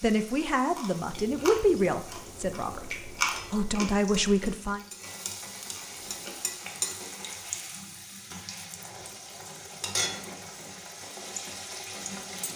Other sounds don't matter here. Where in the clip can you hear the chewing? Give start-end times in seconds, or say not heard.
0.8-6.5.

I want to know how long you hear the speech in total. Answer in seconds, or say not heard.
5 s.